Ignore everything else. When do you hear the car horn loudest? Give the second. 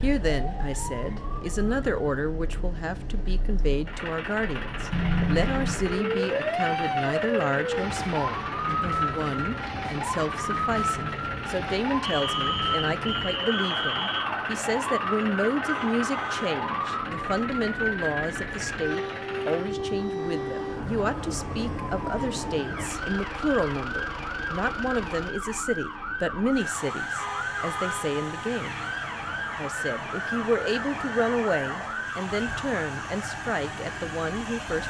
5 s.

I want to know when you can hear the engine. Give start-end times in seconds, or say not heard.
0.0-34.8.